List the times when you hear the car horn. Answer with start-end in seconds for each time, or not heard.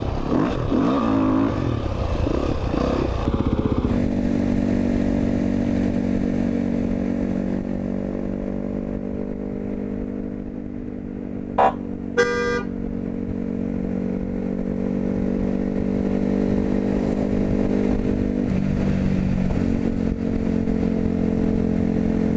11.6-12.7.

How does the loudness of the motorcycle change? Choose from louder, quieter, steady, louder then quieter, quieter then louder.
quieter then louder.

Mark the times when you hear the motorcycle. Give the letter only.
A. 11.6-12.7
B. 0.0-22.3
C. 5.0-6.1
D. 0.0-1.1
B.